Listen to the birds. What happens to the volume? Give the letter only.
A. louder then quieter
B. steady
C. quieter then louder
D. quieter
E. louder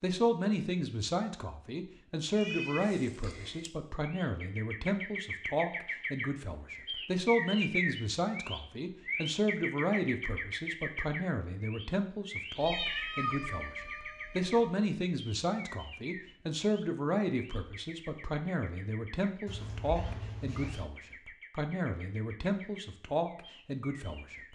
D.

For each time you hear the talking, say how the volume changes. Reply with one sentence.
You can hear the talking from 0.0 to 24.4 s, at a steady volume.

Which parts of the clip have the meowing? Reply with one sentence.
You can hear the meowing from 2.3 to 3.7 s, from 12.6 to 14.6 s and from 19.4 to 20.9 s.